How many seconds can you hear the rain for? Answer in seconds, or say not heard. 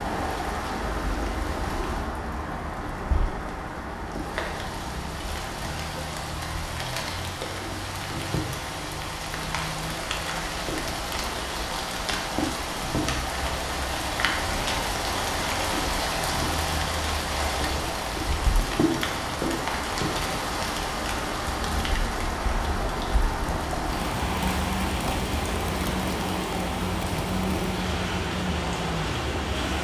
30 s.